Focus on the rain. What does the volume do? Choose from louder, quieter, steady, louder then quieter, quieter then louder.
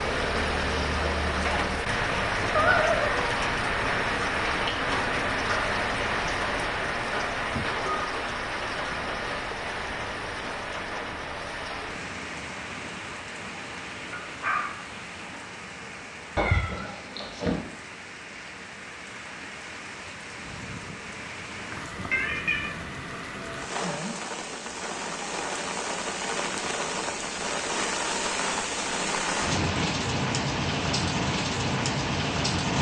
quieter then louder.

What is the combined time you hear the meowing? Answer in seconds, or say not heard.
3 s.